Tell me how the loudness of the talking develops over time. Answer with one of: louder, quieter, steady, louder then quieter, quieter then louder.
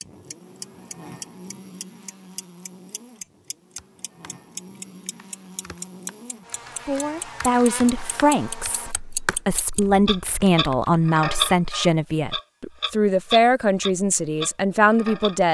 steady.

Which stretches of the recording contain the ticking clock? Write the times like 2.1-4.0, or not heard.
0.0-15.4.